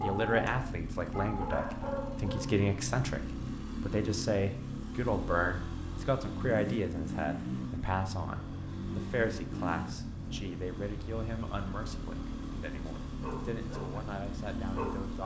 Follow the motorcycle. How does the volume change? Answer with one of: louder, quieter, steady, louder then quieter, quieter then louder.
steady.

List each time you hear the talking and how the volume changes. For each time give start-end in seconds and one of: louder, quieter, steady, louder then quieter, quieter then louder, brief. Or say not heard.
0.0-15.2 quieter.